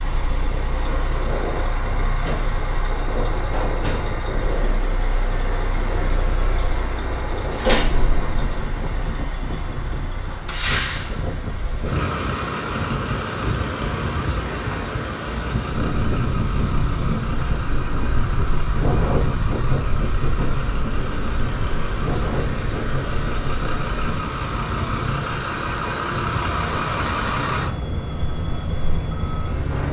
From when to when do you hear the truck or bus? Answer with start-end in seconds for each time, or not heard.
0.0-29.8.